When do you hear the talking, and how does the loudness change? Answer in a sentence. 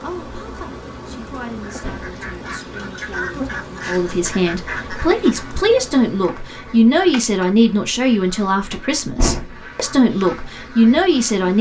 The talking can be heard from 0.0 to 11.5 s, getting louder.